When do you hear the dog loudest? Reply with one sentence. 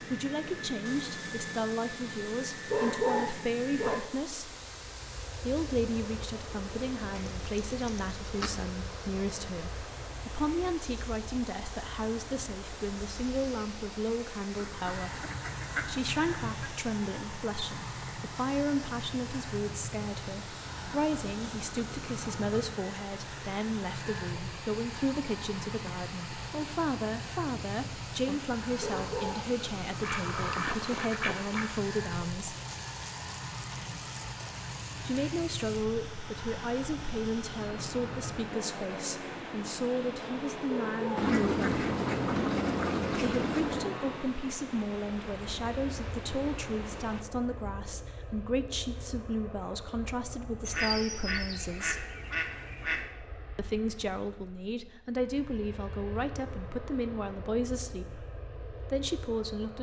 The loudest moment of the dog is at 3 seconds.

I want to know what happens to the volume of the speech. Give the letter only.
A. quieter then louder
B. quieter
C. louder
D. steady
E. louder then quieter
D.